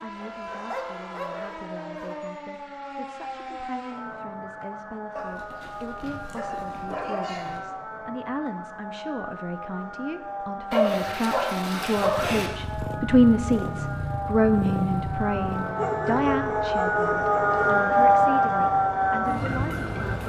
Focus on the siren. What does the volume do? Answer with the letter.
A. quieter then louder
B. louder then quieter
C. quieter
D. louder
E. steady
D.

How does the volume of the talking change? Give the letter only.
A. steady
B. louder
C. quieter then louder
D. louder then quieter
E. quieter
D.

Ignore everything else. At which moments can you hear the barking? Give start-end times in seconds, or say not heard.
0.1-2.1, 5.2-7.6, 10.7-12.5, 15.8-17.8.